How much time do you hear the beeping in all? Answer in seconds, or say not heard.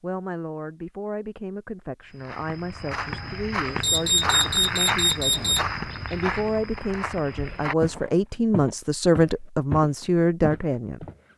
2 s.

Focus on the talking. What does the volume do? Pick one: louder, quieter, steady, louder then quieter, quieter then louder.
louder.